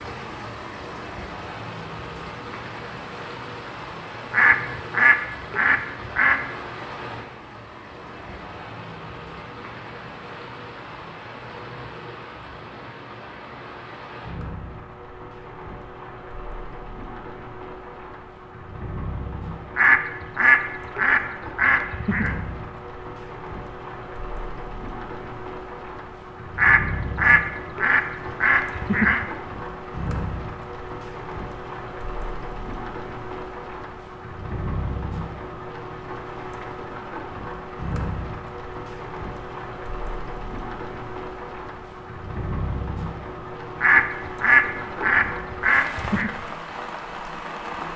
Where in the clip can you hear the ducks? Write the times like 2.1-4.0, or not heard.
4.3-6.4, 19.8-22.4, 26.6-29.2, 43.8-46.3.